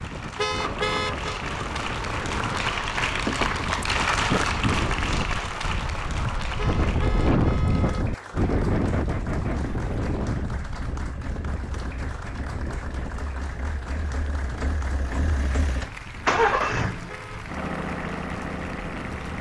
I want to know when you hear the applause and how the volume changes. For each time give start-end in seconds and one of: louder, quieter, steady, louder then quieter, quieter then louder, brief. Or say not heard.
0.0-19.3 quieter.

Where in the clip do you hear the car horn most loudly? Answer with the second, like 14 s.
1 s.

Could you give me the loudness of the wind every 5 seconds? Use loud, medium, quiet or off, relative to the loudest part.
medium, loud, medium, quiet.